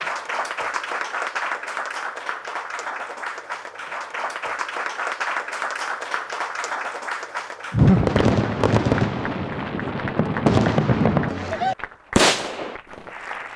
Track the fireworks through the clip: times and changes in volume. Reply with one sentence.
The fireworks can be heard from 7.8 to 13.1 s, getting quieter then louder.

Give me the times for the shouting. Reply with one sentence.
The shouting can't be heard in this clip.